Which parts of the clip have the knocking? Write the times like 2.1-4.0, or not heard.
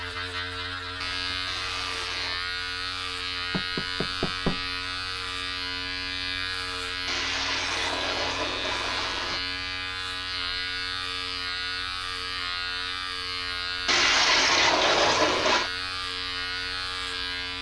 3.5-4.7.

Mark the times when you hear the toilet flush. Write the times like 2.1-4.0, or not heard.
1.4-2.4, 7.0-9.4, 13.8-15.7.